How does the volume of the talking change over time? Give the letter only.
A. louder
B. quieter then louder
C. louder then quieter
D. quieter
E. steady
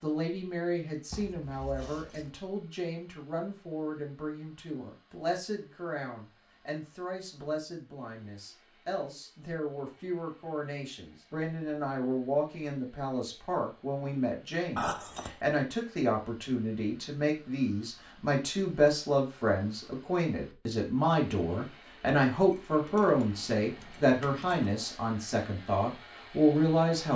A.